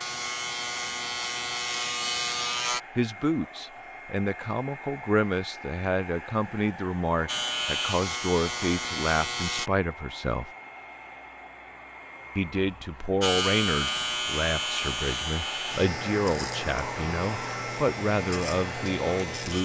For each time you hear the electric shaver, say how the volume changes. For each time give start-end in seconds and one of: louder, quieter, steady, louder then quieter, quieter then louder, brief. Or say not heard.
0.0-2.8 brief
7.2-9.7 brief
13.2-19.5 quieter.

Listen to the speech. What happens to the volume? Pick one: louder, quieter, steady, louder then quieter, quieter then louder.
steady.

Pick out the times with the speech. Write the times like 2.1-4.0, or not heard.
3.0-10.5, 12.3-19.5.